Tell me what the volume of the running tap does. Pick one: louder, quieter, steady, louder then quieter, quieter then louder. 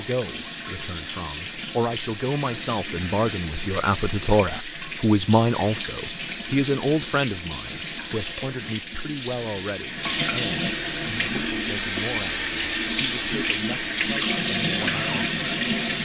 louder.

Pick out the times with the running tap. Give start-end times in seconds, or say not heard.
0.0-16.0.